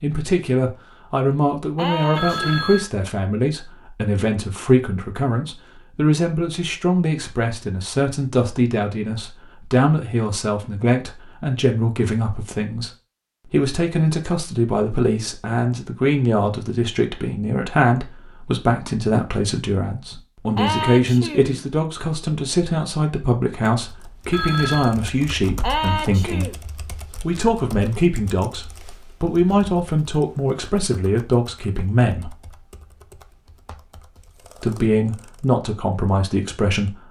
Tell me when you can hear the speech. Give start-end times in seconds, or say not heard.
0.0-12.9, 13.5-26.6, 27.2-32.4, 34.6-37.0.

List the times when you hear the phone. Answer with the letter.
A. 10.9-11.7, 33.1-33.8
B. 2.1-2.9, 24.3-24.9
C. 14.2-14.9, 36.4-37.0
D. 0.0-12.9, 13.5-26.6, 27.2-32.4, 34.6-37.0
B.